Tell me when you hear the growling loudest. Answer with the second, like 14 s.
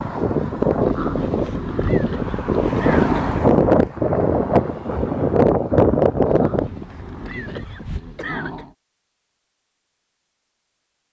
3 s.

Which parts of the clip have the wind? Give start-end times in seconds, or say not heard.
0.0-8.0.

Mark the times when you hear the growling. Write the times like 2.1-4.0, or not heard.
0.8-3.5, 6.2-8.8.